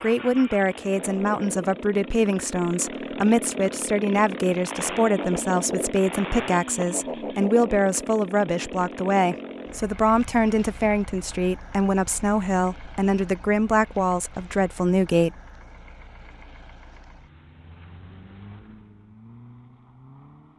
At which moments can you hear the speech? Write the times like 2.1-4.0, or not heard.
0.0-15.3.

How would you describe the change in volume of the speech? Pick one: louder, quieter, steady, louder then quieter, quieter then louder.
steady.